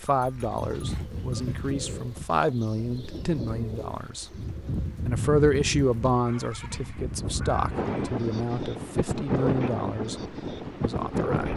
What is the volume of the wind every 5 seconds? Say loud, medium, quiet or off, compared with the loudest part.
medium, loud, loud.